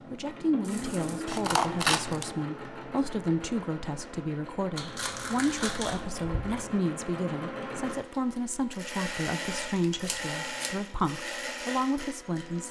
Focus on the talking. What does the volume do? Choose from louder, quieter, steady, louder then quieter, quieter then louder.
steady.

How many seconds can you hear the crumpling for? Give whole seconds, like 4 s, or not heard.
2 s.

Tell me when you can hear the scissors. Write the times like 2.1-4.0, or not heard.
1.2-2.2, 6.0-6.8, 10.1-10.8.